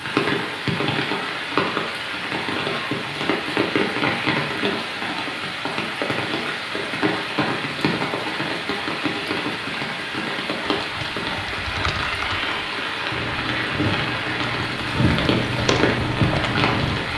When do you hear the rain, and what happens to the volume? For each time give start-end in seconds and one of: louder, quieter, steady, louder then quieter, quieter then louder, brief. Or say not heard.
0.0-17.1 steady.